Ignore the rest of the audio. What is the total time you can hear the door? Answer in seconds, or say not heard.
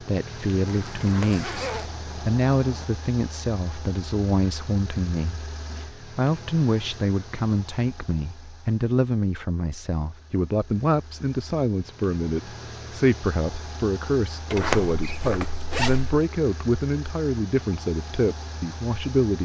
3 s.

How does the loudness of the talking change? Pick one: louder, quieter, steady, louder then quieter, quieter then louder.
steady.